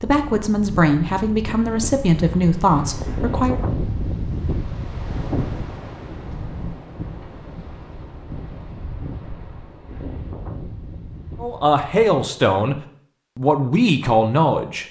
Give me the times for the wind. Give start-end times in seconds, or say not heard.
0.0-12.2.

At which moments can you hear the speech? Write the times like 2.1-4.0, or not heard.
0.0-3.6, 11.4-14.8.